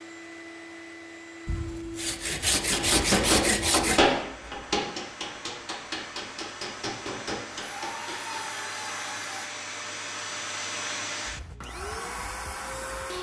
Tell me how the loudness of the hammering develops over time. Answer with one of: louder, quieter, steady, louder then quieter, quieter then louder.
quieter.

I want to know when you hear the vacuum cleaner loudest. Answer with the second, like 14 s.
11 s.